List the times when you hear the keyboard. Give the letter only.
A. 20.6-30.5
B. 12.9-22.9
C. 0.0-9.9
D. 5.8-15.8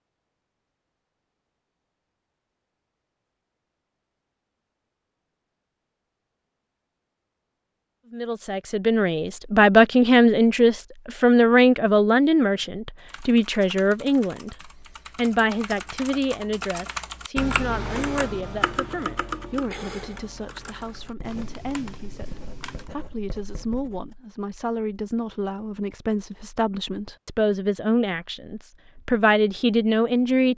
B.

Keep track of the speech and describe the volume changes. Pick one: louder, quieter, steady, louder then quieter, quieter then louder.
quieter then louder.